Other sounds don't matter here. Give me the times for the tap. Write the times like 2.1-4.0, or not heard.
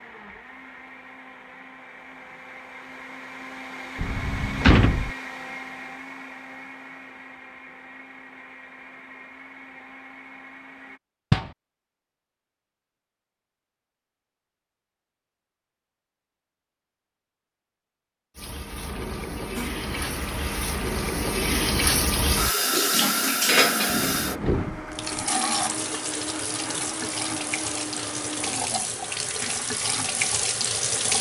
18.4-31.1.